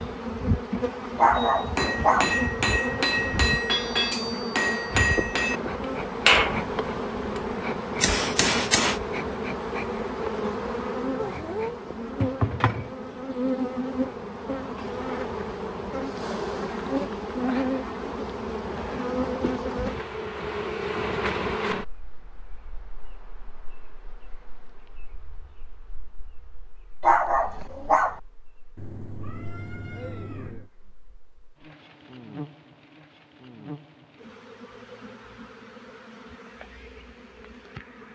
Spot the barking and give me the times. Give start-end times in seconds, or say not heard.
1.1-2.4, 27.0-28.2.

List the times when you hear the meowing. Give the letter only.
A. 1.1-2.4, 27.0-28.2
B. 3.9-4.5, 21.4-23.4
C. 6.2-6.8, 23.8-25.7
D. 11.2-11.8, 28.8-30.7
D.